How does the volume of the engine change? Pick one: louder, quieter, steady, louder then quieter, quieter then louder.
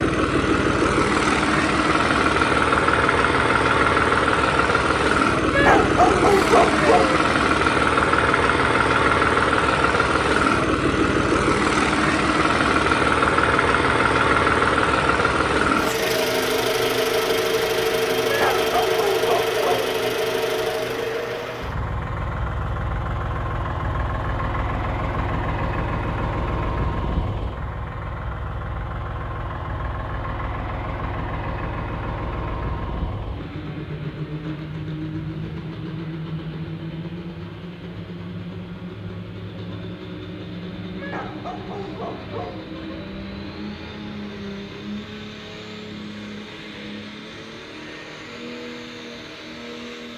quieter.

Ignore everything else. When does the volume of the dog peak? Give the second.
6 s.